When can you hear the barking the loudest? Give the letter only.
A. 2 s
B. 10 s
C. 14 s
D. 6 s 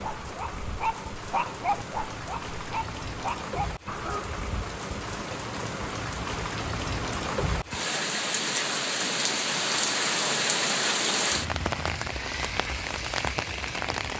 A.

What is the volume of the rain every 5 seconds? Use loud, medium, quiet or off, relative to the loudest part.
medium, loud, loud.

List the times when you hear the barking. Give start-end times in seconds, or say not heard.
0.0-4.3.